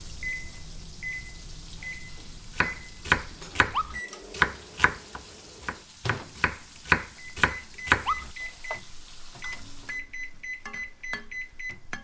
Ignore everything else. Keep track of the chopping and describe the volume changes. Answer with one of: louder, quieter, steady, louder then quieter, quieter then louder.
quieter then louder.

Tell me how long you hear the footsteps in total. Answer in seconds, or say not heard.
not heard.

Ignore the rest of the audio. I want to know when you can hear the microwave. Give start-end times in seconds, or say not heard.
0.0-11.9.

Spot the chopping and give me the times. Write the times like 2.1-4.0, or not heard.
2.5-8.8.